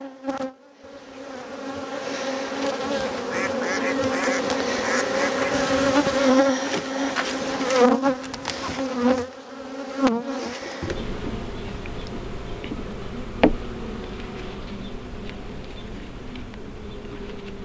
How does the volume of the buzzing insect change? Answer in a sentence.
The volume of the buzzing insect goes up, then down.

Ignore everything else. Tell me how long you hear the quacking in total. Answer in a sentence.
You can hear the quacking for 2 seconds altogether.